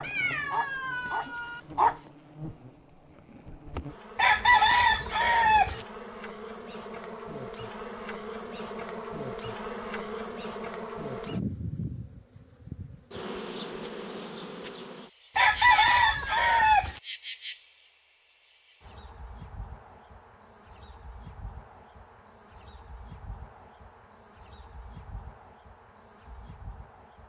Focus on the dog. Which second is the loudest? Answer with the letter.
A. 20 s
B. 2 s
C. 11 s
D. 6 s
B.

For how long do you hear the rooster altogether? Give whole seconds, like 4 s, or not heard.
3 s.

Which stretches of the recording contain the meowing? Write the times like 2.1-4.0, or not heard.
0.0-1.6, 15.6-16.8.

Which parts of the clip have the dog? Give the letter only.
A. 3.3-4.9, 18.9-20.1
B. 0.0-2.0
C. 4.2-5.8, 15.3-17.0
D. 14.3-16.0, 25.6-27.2
B.